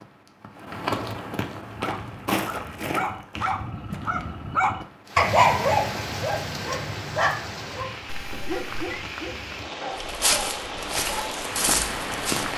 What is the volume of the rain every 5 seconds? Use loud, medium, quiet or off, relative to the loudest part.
off, loud, loud.